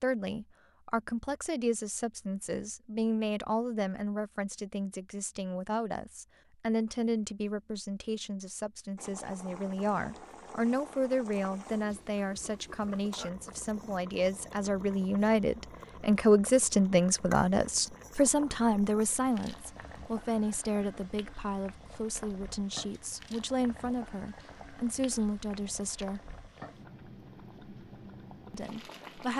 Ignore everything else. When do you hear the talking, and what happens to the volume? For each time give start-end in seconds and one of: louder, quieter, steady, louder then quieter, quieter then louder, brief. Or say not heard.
0.0-26.2 louder then quieter
28.5-29.3 brief.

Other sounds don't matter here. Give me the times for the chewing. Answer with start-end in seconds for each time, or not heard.
not heard.